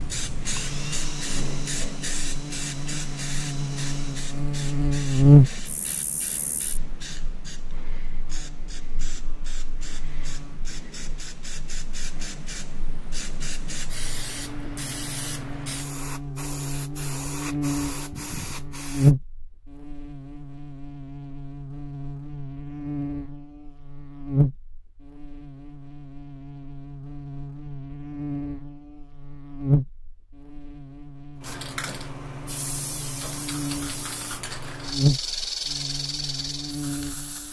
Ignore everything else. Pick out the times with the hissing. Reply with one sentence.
The hissing can be heard from 0.0 to 19.1 s and from 31.4 to 37.4 s.